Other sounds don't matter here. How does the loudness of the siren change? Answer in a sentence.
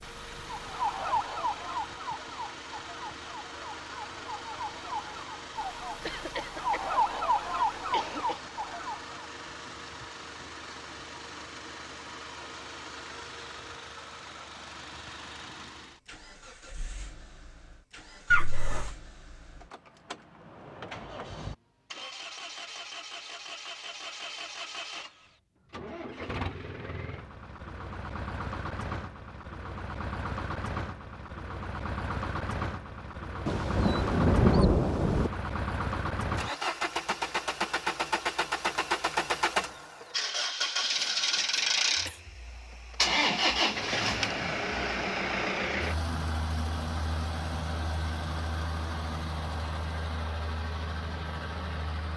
The volume of the siren goes down, then up.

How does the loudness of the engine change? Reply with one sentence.
The volume of the engine goes up.